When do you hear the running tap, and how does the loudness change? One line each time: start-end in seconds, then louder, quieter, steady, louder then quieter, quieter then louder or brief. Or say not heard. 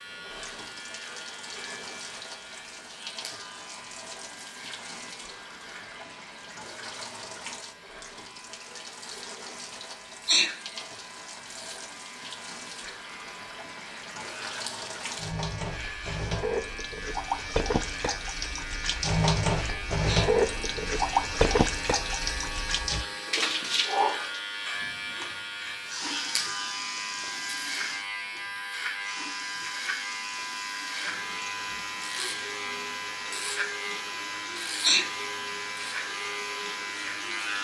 0.0-37.6 louder then quieter.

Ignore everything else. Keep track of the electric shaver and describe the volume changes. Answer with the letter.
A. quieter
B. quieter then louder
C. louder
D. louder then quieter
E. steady
C.